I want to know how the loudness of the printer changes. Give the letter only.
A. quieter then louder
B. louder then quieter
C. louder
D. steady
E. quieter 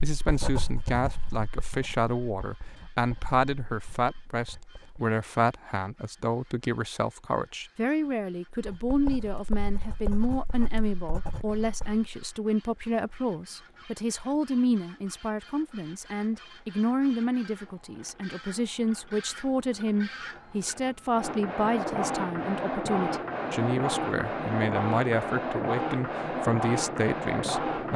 C.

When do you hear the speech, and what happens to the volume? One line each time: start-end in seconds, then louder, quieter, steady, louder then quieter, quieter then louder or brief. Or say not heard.
0.0-27.9 steady.